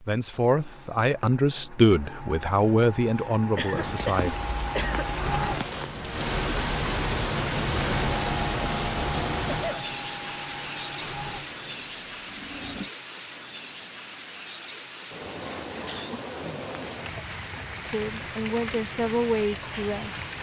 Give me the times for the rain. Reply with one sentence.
The rain can be heard from 3.7 to 20.3 s.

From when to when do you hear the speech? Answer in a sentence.
You can hear the speech from 0.0 to 4.3 s and from 17.9 to 20.2 s.